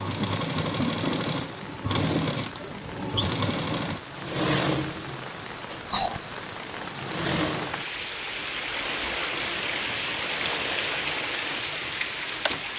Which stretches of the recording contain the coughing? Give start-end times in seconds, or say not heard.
not heard.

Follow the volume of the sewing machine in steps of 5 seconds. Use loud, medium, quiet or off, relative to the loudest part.
loud, medium, medium.